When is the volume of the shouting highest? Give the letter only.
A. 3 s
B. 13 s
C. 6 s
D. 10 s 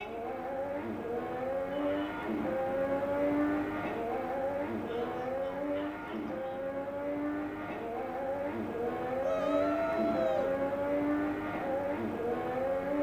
D.